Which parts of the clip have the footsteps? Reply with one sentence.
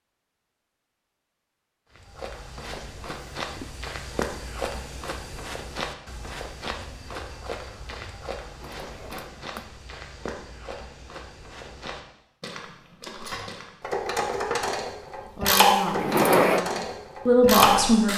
You can hear the footsteps from 1.9 to 13.8 s.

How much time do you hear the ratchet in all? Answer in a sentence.
You can hear the ratchet for 5 seconds altogether.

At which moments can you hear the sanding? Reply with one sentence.
The sanding can't be heard in this clip.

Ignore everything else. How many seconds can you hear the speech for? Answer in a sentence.
You can hear the speech for 3 seconds altogether.